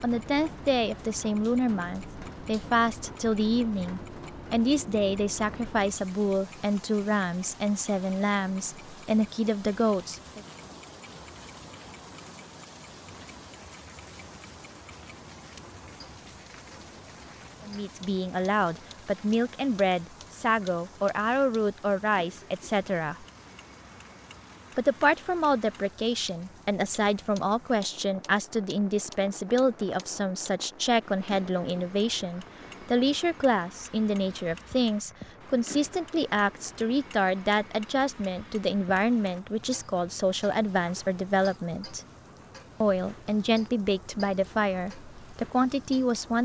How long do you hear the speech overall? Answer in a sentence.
You can hear the speech for 37 seconds altogether.